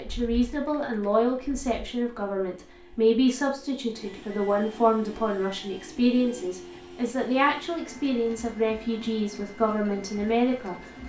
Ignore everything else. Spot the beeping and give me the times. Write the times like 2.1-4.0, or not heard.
not heard.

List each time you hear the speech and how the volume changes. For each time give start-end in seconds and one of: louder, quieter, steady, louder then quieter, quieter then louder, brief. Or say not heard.
0.0-11.0 steady.